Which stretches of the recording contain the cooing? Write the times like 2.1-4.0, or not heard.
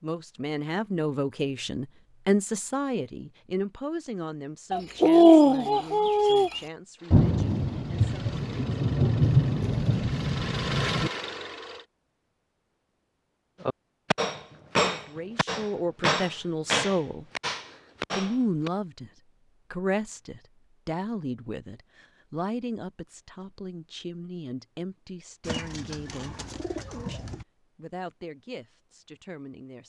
4.7-6.6, 25.4-27.4.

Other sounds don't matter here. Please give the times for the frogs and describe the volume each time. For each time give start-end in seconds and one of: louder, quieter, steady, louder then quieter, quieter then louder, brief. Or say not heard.
not heard.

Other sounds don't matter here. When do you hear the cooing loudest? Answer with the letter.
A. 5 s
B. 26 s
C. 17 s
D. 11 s
A.